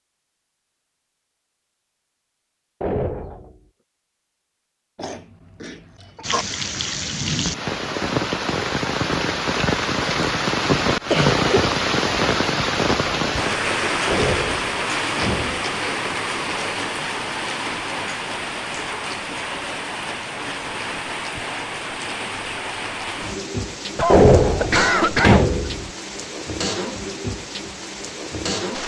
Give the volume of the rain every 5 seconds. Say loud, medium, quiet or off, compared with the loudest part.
off, loud, loud, medium, medium, medium.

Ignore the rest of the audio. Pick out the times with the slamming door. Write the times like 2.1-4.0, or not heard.
2.8-3.5, 14.1-15.7, 24.1-25.9.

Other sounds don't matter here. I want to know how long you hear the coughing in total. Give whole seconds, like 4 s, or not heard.
4 s.